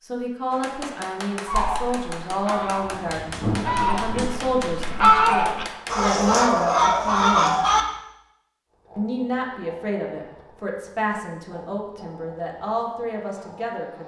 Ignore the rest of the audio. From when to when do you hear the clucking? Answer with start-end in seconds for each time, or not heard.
1.4-7.8.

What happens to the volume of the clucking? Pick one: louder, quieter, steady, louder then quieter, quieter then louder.
louder.